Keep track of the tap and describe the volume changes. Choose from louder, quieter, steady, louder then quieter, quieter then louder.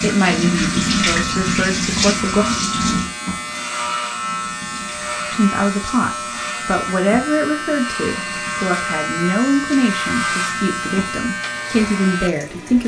quieter.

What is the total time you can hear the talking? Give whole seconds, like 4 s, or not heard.
10 s.